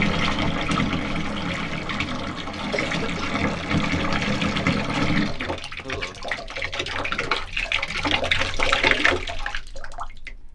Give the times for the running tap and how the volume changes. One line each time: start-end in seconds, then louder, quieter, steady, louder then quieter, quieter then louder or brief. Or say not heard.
0.0-10.5 steady.